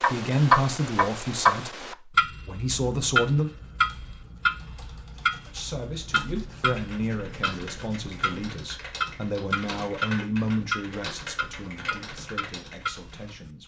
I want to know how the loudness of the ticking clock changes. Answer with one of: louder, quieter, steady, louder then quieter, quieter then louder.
quieter.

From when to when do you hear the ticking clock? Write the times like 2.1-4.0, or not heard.
0.0-13.5.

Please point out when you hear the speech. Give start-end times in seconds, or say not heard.
0.0-3.5, 5.5-13.6.